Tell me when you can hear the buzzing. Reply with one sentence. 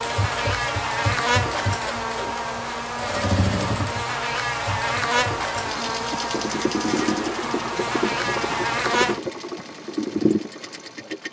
You can hear the buzzing from 0.0 to 9.2 s.